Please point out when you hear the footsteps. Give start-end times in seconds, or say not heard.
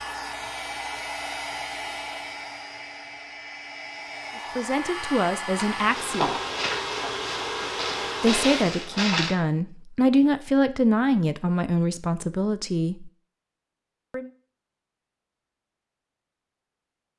5.5-9.3.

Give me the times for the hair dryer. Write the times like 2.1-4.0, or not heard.
0.0-8.7.